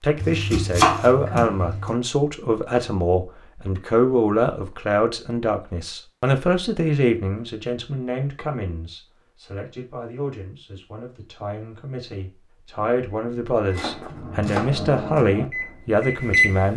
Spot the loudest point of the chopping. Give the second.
1 s.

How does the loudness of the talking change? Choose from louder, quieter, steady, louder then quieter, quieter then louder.
quieter then louder.